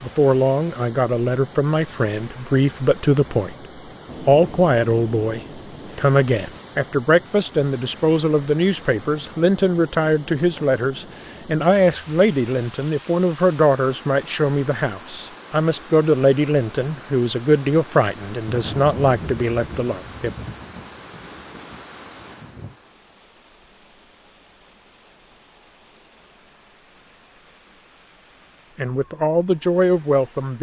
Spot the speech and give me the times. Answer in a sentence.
The speech can be heard from 0.0 to 3.5 s, from 4.2 to 20.3 s and from 28.8 to 30.5 s.